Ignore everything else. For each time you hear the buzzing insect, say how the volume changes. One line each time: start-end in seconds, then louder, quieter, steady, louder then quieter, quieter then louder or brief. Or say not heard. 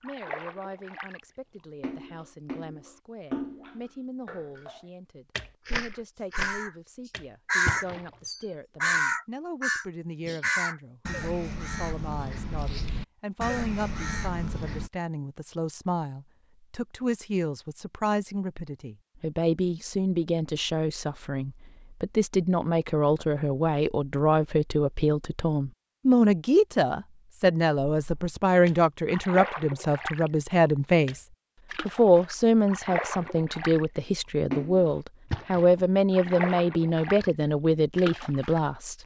not heard.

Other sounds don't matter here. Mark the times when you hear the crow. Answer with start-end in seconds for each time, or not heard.
6.3-14.9.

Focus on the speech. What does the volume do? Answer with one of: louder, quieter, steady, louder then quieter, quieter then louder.
louder.